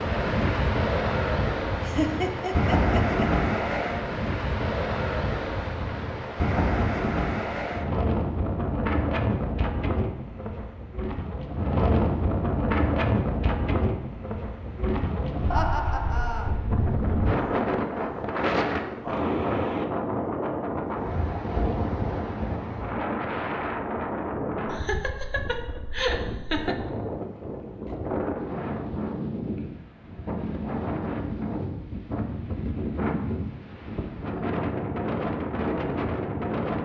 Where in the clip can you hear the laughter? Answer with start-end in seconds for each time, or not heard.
1.8-3.3, 15.5-16.6, 24.7-26.8.